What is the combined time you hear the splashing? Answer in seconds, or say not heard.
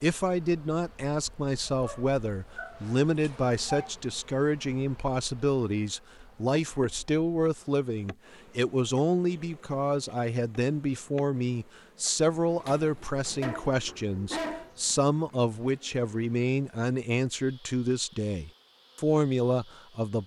not heard.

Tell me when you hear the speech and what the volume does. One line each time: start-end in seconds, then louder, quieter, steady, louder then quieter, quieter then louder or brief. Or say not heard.
0.0-20.2 steady.